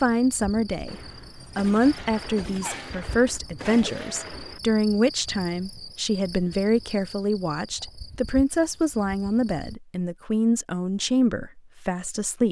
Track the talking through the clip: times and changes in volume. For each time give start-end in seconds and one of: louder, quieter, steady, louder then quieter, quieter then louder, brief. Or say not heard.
0.0-12.4 steady.